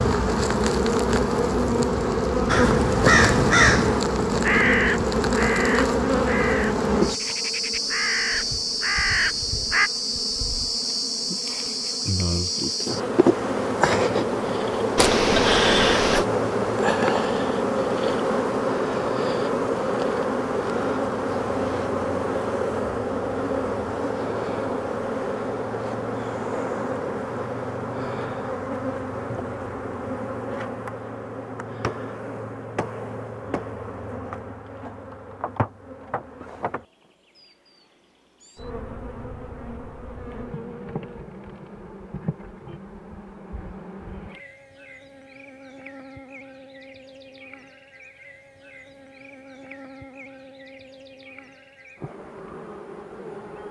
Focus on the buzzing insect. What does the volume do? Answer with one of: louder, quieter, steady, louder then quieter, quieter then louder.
quieter.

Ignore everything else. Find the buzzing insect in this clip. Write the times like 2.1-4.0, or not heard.
0.0-53.6.